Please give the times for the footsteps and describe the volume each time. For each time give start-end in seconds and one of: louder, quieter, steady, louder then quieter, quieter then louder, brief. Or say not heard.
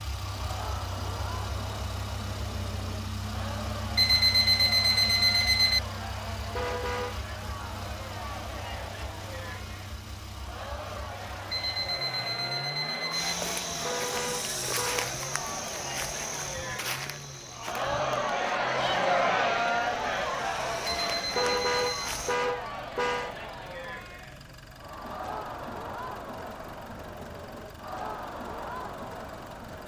13.1-22.4 quieter then louder.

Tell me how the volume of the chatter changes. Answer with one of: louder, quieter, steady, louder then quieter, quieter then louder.
louder then quieter.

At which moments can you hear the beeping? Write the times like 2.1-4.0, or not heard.
4.0-5.8, 11.5-13.3, 20.9-22.1.